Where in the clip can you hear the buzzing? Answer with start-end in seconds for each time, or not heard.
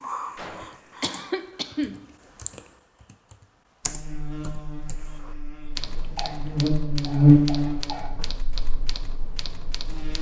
3.9-10.1.